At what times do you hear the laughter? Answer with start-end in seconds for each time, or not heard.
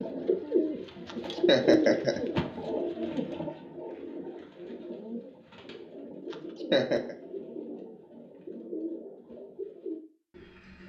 1.1-2.2, 6.3-7.2.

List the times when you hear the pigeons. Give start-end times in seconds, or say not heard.
0.0-10.8.